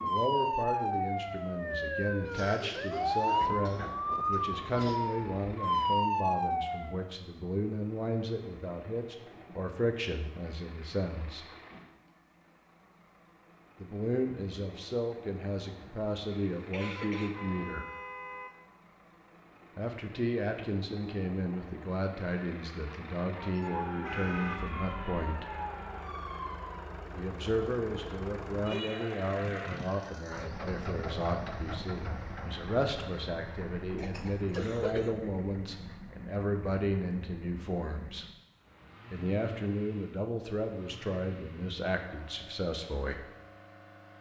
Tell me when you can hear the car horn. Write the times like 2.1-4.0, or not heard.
16.8-18.5, 23.6-24.6.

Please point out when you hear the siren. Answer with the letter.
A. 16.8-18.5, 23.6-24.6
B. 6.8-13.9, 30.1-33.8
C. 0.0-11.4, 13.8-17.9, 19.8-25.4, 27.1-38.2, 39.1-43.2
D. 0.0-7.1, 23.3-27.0
D.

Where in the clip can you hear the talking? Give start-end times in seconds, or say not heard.
0.0-11.4, 13.8-17.9, 19.8-25.4, 27.1-38.2, 39.1-43.2.